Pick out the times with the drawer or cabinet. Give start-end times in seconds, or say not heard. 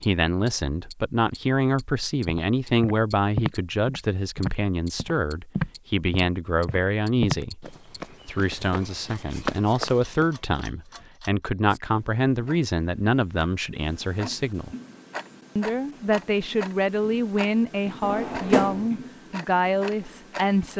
18.0-18.9.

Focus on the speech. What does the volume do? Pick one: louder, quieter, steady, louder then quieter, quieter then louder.
steady.